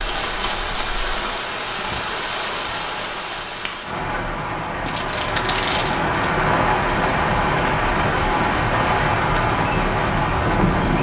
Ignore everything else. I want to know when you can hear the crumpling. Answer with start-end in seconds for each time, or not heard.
4.8-6.3.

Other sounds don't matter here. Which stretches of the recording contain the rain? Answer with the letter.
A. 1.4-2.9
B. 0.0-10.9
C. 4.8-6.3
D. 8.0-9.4
B.